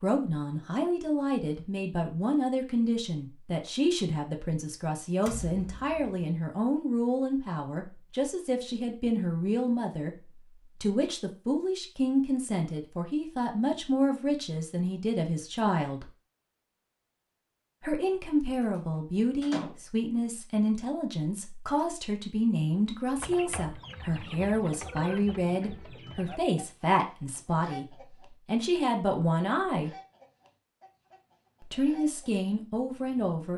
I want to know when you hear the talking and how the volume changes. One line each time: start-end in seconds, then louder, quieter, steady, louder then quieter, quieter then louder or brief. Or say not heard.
0.0-16.1 steady
17.8-29.9 steady
31.6-33.5 brief.